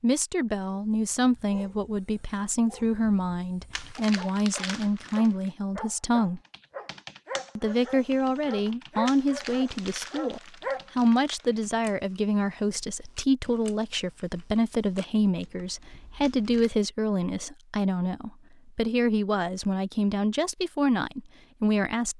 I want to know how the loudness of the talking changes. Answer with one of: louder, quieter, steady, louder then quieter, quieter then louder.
steady.